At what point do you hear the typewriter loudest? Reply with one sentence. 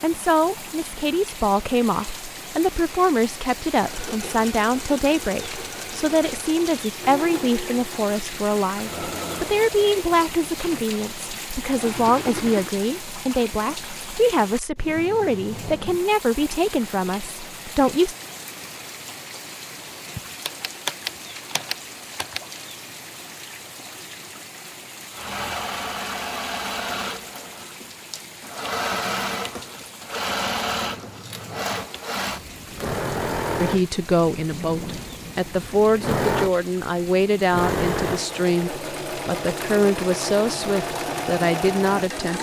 The volume of the typewriter peaks at 21 seconds.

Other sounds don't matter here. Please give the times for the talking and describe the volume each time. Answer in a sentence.
You can hear the talking from 0.0 to 18.1 s, at a steady volume; and from 33.5 to 42.3 s, at a steady volume.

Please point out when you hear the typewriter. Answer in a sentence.
You can hear the typewriter from 20.1 to 22.4 s.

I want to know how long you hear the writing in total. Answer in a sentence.
You can't hear the writing here.